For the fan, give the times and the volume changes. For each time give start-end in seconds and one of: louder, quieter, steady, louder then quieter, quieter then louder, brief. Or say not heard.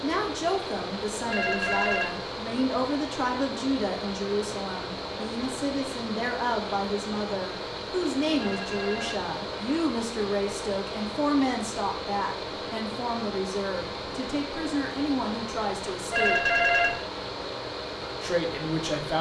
0.0-19.1 steady.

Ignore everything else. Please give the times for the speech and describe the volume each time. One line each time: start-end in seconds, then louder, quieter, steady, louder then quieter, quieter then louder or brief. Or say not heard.
0.0-16.4 steady
18.2-19.1 brief.